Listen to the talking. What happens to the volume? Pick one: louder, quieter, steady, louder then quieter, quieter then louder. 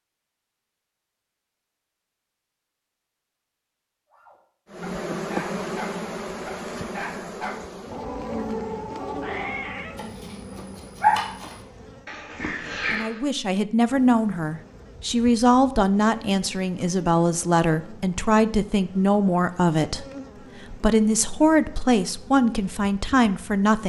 steady.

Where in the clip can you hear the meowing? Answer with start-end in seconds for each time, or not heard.
9.2-10.1.